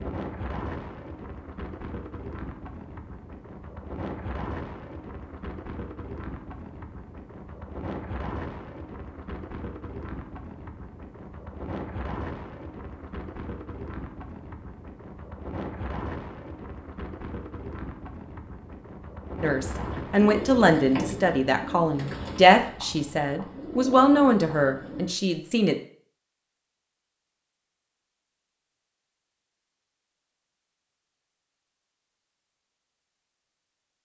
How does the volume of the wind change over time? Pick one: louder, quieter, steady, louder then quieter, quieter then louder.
steady.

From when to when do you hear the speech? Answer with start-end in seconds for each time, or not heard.
19.4-25.8.